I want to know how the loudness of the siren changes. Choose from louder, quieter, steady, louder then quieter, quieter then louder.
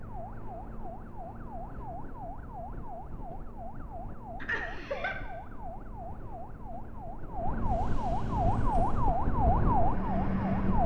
louder.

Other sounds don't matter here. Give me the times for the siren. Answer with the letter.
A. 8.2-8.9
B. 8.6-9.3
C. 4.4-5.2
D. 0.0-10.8
D.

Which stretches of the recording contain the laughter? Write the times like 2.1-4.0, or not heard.
4.4-5.2.